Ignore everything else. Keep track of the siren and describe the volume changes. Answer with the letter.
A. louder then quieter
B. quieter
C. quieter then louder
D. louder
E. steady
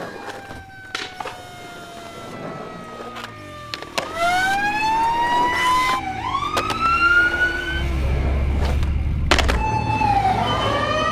D.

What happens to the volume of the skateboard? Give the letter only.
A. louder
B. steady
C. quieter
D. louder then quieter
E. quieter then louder
A.